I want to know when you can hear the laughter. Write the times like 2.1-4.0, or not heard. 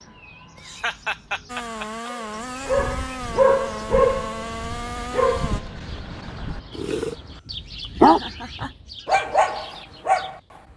0.6-2.1, 7.8-8.8.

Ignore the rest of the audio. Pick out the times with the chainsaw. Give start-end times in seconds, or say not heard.
1.4-5.6.